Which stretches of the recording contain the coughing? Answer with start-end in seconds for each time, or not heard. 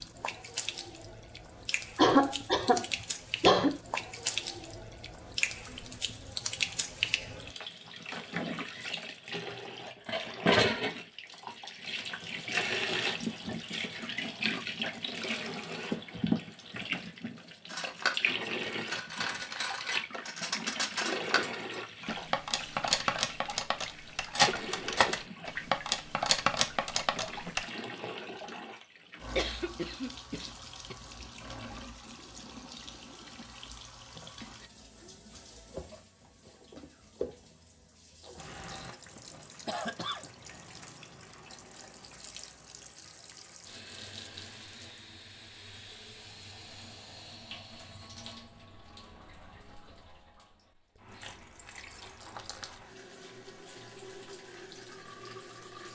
1.9-3.8, 29.4-30.9, 38.2-40.3.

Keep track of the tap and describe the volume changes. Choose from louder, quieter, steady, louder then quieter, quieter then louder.
quieter.